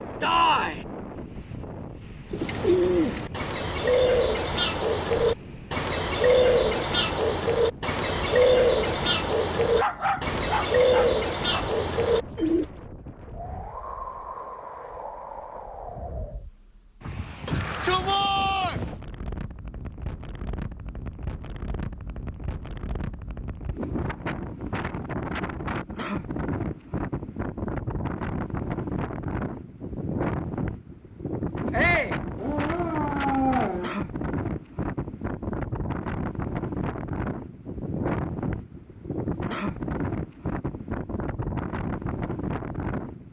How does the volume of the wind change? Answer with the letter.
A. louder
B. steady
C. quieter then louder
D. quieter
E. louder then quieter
A.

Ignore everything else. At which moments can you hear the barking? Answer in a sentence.
You can hear the barking from 9.8 to 11.7 s and from 32.4 to 34.0 s.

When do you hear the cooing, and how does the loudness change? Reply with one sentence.
You can hear the cooing from 2.3 to 12.7 s, at a steady volume.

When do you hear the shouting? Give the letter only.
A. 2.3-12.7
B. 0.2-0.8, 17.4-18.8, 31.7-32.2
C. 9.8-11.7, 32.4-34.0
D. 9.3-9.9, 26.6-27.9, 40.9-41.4
B.